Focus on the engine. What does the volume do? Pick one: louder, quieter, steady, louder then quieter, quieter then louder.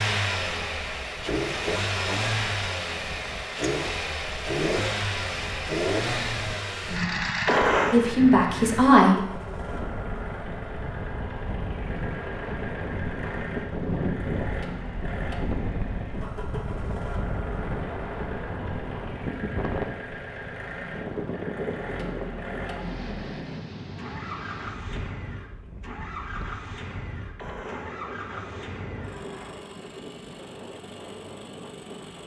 quieter.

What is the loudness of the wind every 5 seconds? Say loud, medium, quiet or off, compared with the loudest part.
quiet, medium, loud, loud, loud, medium, medium.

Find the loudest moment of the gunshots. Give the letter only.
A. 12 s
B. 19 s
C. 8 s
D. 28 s
C.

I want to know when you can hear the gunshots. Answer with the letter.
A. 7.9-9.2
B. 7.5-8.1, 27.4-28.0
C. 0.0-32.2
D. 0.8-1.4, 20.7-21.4
B.